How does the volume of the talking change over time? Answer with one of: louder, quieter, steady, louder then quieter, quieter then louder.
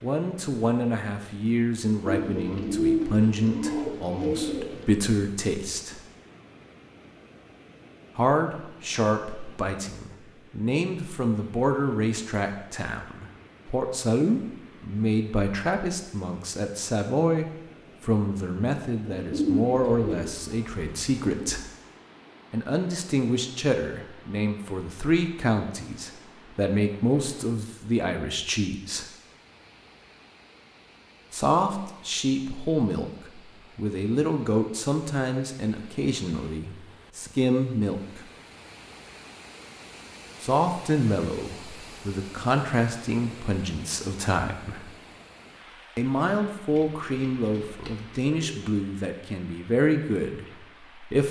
steady.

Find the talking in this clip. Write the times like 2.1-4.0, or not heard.
0.0-6.0, 8.2-21.6, 22.5-29.1, 31.3-38.2, 40.4-44.9, 46.0-51.2.